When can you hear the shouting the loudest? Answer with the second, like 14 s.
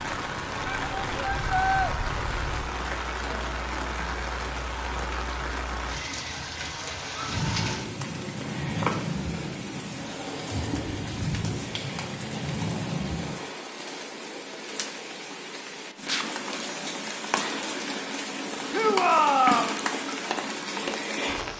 19 s.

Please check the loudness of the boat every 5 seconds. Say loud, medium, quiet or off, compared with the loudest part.
medium, loud, loud, off, off.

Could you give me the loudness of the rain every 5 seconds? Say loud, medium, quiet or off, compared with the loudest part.
loud, loud, medium, loud, loud.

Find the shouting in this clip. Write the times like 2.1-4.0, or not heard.
0.7-1.9, 18.7-19.8.